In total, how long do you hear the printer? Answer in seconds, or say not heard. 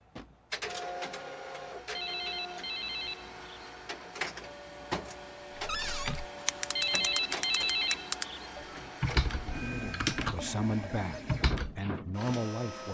13 s.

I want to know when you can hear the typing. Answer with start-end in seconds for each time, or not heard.
5.6-12.4.